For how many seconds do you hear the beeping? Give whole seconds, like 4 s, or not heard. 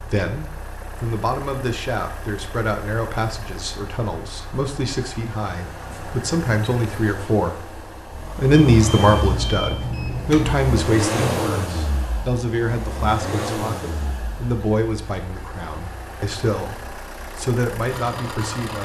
2 s.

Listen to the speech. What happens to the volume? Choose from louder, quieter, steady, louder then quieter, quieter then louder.
louder then quieter.